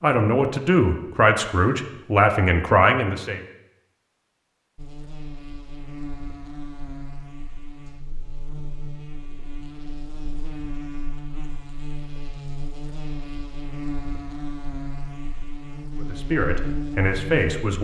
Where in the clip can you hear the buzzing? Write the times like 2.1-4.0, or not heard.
4.8-17.7.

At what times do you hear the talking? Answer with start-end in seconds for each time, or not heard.
0.0-3.4, 15.9-17.7.